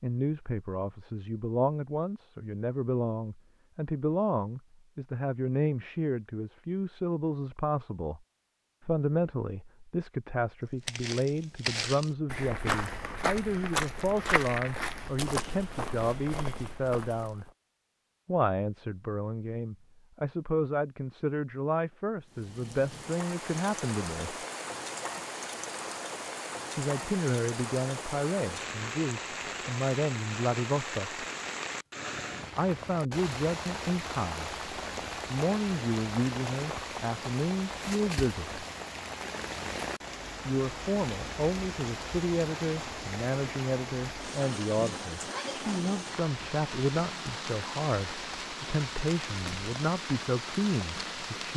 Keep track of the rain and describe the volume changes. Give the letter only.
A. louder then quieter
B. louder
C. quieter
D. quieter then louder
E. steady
E.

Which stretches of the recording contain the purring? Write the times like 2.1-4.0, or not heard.
not heard.